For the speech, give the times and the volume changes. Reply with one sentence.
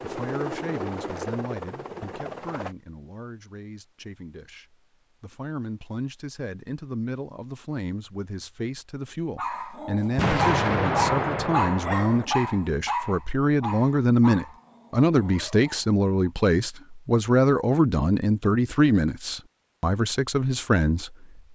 You can hear the speech from 0.0 to 21.5 s, getting louder.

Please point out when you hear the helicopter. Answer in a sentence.
You can hear the helicopter from 0.0 to 2.8 s.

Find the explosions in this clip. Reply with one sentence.
The explosions can be heard from 10.2 to 12.2 s.